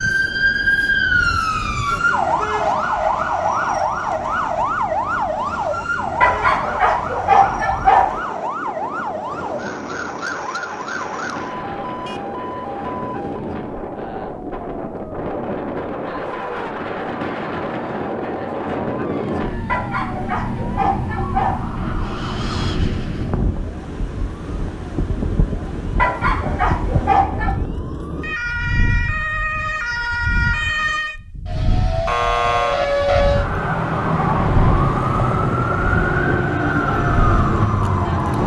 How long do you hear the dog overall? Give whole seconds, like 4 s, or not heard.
6 s.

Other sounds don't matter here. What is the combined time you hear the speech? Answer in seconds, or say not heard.
not heard.